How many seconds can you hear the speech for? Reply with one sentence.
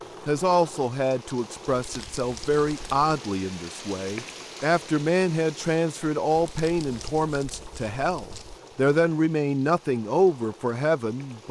You can hear the speech for 11 seconds altogether.